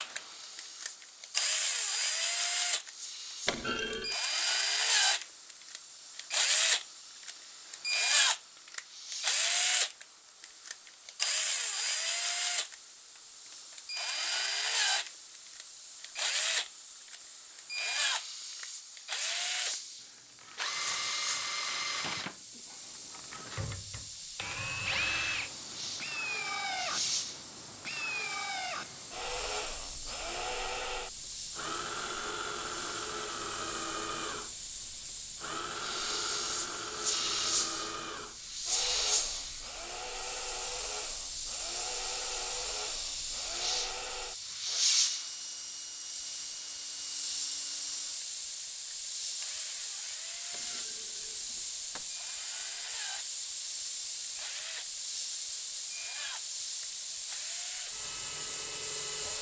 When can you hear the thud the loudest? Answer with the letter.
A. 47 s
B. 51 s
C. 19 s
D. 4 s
D.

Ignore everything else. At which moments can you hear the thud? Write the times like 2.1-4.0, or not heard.
3.5-4.2, 50.5-52.1.